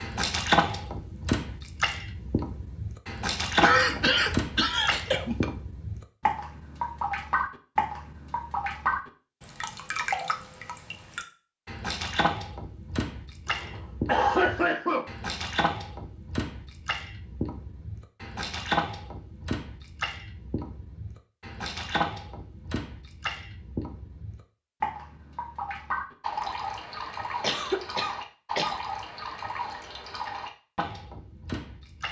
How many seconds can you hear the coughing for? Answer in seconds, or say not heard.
5 s.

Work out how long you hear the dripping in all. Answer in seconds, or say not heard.
32 s.